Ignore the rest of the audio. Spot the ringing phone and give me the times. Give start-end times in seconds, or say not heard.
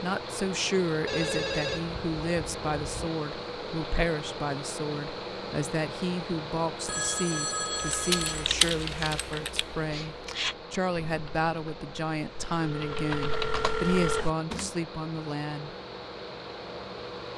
1.1-3.1, 6.8-8.5, 12.6-14.3.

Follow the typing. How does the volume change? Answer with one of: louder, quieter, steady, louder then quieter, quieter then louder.
quieter then louder.